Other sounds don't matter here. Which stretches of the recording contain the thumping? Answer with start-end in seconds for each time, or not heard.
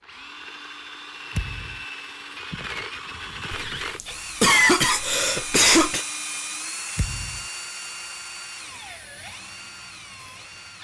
1.4-1.9, 7.0-7.5.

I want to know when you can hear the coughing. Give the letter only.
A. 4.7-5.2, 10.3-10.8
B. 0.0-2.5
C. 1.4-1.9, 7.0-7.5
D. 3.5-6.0
D.